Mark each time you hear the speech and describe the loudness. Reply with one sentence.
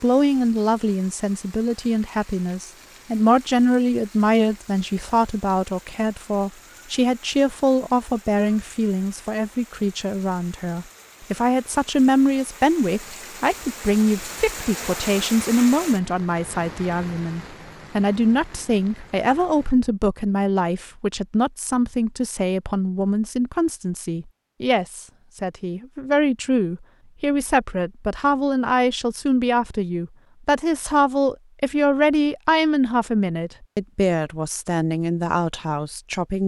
The speech can be heard from 0.0 to 36.4 s, at a steady volume.